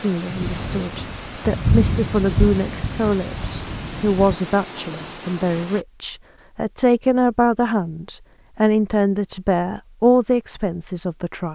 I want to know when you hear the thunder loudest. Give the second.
2 s.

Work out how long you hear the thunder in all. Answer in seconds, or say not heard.
4 s.